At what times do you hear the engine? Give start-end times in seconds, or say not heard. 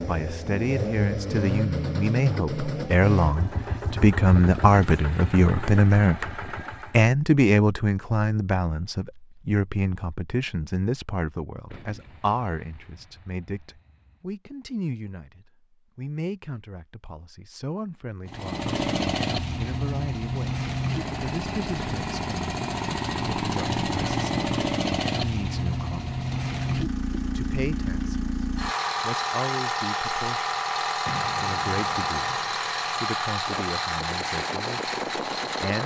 0.0-7.0, 18.2-35.8.